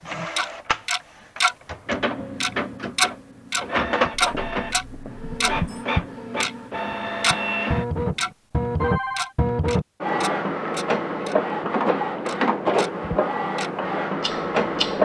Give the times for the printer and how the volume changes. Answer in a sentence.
You can hear the printer from 0.0 to 15.0 s, getting louder.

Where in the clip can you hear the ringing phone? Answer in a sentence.
The ringing phone can be heard from 4.1 to 5.8 s and from 8.0 to 9.3 s.